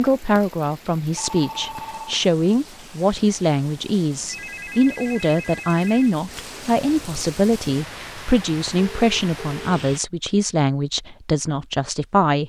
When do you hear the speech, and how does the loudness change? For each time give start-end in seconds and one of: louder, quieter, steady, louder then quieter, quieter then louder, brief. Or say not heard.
0.0-12.4 steady.